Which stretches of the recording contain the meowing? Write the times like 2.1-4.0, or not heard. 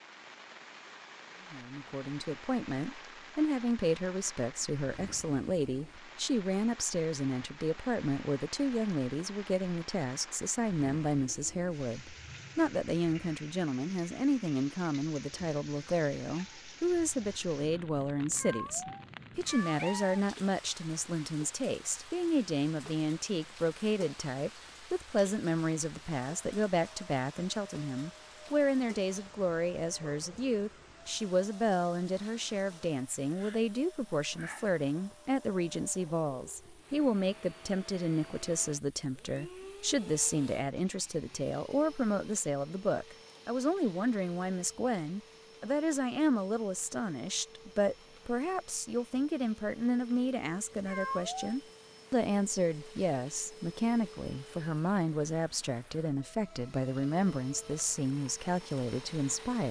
18.4-20.2, 50.9-51.5.